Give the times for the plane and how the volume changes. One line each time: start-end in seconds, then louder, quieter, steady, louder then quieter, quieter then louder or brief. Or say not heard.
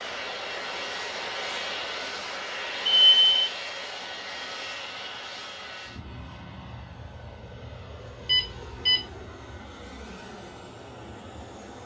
0.0-11.8 quieter.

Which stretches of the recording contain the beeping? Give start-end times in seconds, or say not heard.
2.8-3.4, 8.2-9.1.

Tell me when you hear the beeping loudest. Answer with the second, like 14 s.
3 s.